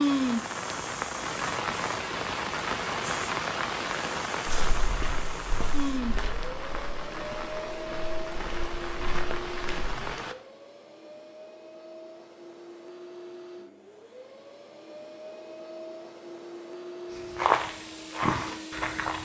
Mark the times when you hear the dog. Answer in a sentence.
You can't hear the dog here.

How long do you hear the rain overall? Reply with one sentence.
The rain can be heard for 10 seconds in total.